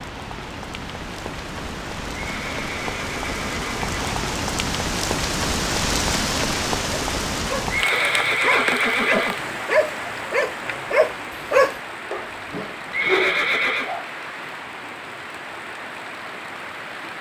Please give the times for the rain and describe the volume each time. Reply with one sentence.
You can hear the rain from 0.0 to 17.1 s, getting louder then quieter.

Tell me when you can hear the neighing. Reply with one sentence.
The neighing can be heard from 2.1 to 4.2 s, from 7.7 to 9.4 s and from 12.9 to 13.9 s.